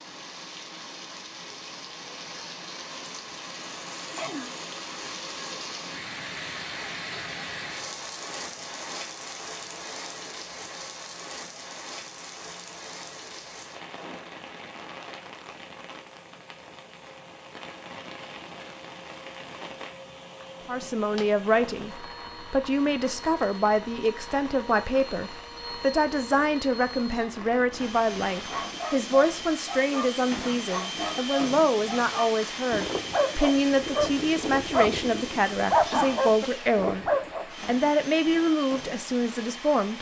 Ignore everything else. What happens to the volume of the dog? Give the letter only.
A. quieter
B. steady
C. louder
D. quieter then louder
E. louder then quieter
C.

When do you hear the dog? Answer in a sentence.
You can hear the dog from 28.4 to 37.5 s.